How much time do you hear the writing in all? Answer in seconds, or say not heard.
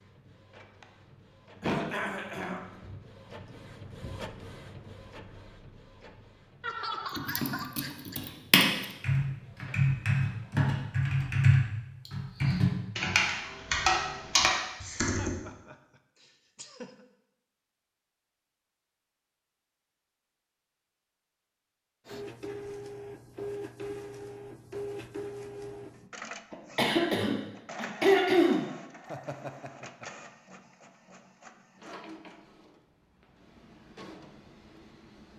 not heard.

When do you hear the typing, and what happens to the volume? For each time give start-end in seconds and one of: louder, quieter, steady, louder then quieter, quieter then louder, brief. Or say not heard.
7.2-15.3 steady.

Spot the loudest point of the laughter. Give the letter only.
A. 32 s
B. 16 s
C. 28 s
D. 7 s
D.